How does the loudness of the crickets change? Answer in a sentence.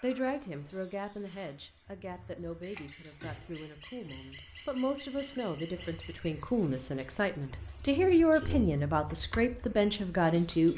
The volume of the crickets goes up.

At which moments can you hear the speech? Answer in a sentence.
The speech can be heard from 0.0 to 10.7 s.